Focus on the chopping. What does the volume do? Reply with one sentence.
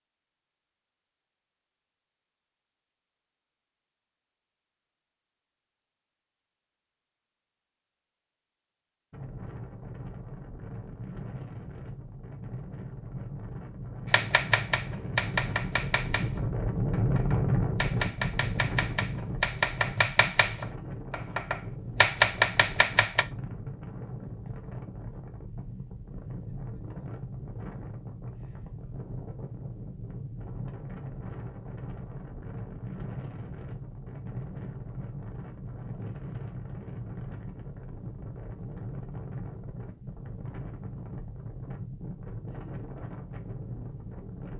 The loudness of the chopping goes down, then up.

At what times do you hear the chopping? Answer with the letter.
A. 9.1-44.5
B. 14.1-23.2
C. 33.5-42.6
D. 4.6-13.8
B.